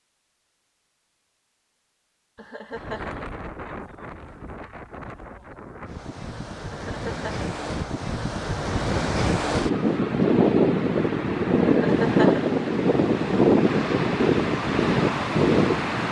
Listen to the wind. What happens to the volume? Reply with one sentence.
The loudness of the wind goes up.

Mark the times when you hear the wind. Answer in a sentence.
The wind can be heard from 2.7 to 16.0 s.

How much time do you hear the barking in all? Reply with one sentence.
The barking can't be heard in this clip.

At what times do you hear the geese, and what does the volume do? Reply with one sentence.
You can't hear the geese here.